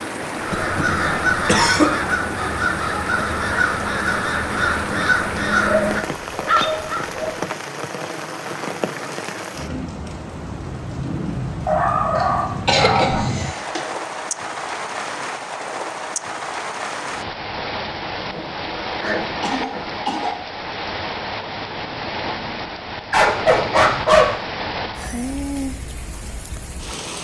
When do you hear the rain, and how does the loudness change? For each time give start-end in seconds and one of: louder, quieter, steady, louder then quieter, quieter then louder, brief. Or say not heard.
0.0-27.1 steady.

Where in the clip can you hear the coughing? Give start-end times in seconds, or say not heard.
0.5-1.9, 12.2-13.9, 19.4-20.4.